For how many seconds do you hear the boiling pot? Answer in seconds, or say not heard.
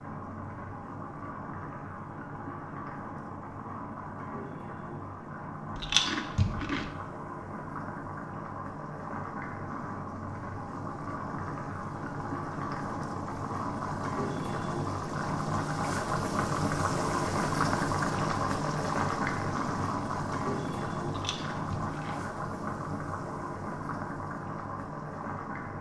26 s.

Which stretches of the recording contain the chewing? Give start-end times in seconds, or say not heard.
5.8-6.9, 21.1-22.2.